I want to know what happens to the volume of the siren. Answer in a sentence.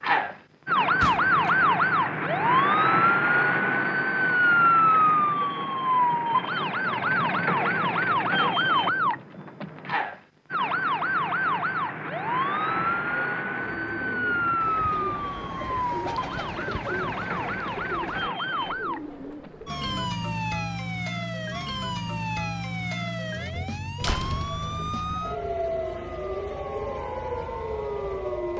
The loudness of the siren goes down.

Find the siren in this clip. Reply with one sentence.
You can hear the siren from 0.0 to 28.5 s.